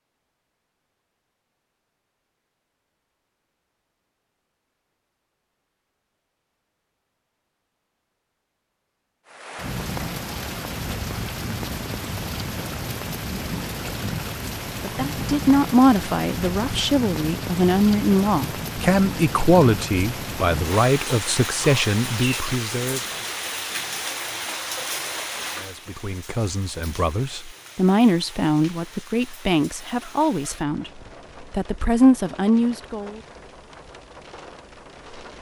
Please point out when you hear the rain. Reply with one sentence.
You can hear the rain from 9.2 to 35.3 s.